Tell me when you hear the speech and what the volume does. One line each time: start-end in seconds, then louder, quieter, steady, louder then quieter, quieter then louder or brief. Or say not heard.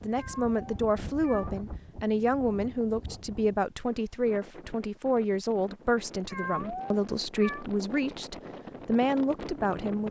0.0-10.0 steady.